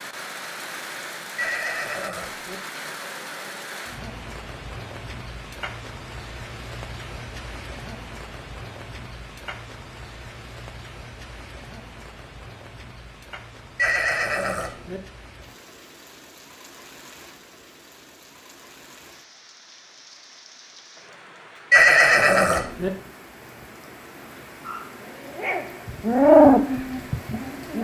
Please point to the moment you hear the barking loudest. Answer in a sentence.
The loudest moment of the barking is at 26 seconds.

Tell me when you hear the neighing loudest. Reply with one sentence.
The loudest moment of the neighing is at 22 seconds.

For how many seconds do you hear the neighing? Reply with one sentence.
The neighing can be heard for 4 seconds in total.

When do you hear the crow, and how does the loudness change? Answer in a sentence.
The crow can't be heard in this clip.